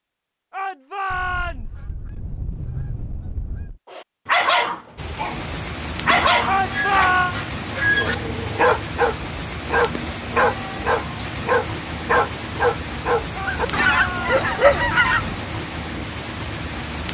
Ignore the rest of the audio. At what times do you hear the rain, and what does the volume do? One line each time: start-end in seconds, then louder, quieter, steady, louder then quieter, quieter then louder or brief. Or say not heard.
5.0-17.0 steady.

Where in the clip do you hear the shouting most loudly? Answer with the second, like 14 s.
7 s.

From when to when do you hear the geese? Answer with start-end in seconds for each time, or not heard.
1.1-3.8, 6.2-8.2, 13.4-15.3.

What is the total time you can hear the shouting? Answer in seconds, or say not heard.
3 s.